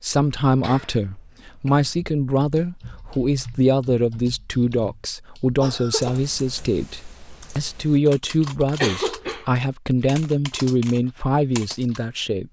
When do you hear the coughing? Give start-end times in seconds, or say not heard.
0.5-1.9, 5.6-6.2, 8.6-9.4.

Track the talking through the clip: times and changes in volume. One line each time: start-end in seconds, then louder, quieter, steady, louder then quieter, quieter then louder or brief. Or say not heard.
0.0-12.4 steady.